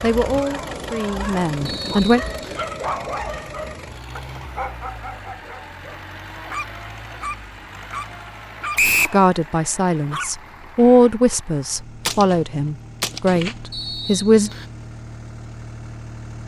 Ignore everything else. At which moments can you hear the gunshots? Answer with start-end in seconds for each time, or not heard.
12.1-13.6.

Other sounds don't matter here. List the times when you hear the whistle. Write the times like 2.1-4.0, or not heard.
1.6-2.6, 8.8-9.2, 13.7-14.7.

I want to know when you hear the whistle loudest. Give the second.
9 s.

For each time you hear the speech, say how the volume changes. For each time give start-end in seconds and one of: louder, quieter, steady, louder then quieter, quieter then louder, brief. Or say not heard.
0.0-2.2 brief
9.1-14.5 louder then quieter.